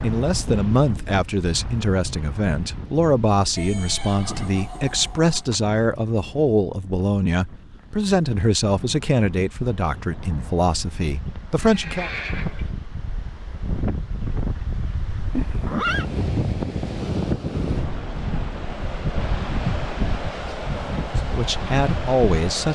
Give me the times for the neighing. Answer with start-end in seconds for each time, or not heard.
3.5-5.6, 11.6-12.7, 15.3-16.1.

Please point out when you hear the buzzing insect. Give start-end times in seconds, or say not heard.
not heard.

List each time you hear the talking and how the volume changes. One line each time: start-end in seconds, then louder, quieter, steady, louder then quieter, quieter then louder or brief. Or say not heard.
0.0-12.1 steady
21.3-22.7 brief.